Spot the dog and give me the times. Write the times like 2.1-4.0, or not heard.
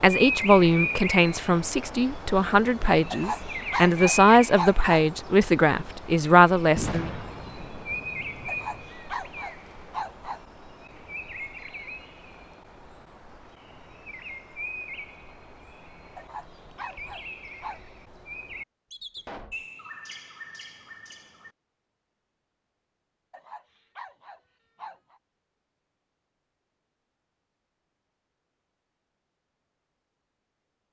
3.1-5.0, 8.4-10.4, 16.1-17.8, 23.3-25.2.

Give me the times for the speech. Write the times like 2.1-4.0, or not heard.
0.0-7.1.